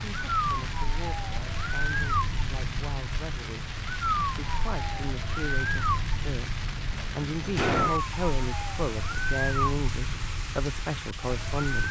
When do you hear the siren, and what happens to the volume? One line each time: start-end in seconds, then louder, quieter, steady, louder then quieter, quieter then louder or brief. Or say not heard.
0.0-11.8 steady.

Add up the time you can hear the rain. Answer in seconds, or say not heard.
12 s.